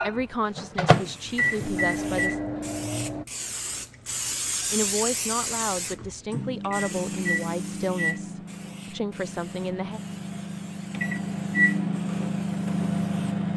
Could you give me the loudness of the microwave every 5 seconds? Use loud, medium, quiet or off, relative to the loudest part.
loud, medium, loud.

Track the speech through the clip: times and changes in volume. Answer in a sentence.
You can hear the speech briefly from 0.0 to 2.4 s; and from 4.7 to 10.0 s, at a steady volume.